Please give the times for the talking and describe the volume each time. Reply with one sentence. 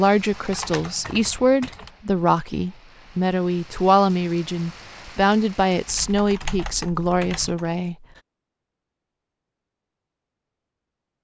You can hear the talking from 0.0 to 8.0 s, at a steady volume.